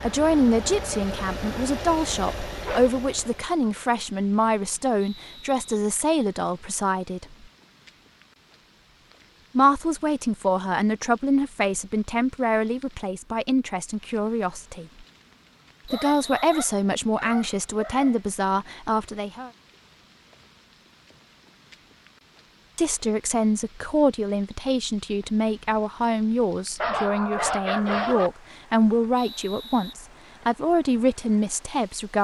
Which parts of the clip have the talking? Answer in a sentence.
The talking can be heard from 0.0 to 7.3 s, from 9.6 to 15.1 s, from 15.8 to 19.5 s and from 22.8 to 32.1 s.